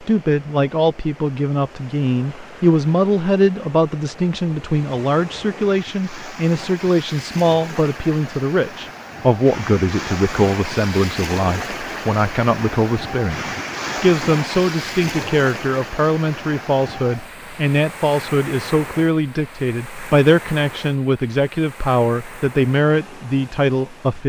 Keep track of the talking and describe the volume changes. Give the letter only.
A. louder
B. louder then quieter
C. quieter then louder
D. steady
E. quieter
D.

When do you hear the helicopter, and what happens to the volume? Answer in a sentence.
The helicopter can't be heard in this clip.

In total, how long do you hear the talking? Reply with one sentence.
You can hear the talking for 24 seconds altogether.